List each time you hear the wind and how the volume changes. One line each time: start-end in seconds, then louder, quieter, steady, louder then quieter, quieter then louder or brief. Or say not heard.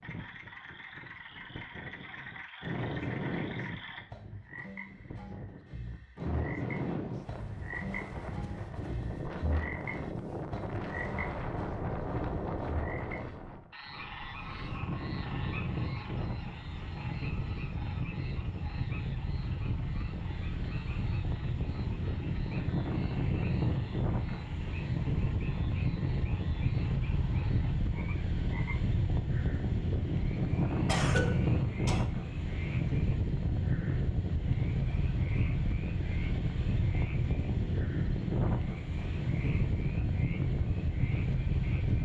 0.0-42.0 louder.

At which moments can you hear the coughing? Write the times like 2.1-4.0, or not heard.
30.9-32.0.